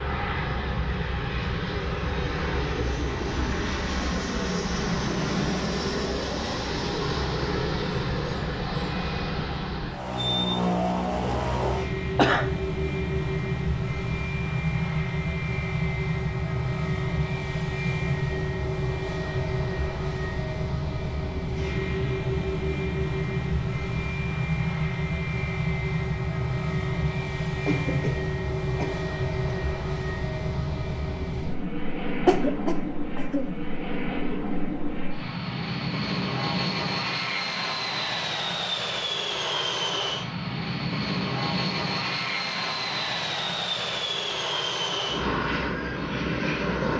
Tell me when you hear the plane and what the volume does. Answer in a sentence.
The plane can be heard from 0.0 to 46.9 s, at a steady volume.